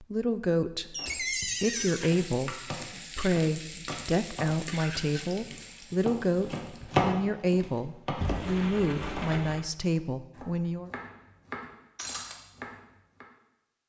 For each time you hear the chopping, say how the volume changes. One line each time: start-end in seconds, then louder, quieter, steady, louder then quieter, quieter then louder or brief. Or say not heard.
0.9-13.2 louder then quieter.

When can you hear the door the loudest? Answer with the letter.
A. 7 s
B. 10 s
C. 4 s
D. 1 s
D.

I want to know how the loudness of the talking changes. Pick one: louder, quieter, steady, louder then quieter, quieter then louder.
steady.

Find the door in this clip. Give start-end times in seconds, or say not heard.
0.9-2.0, 8.1-9.7.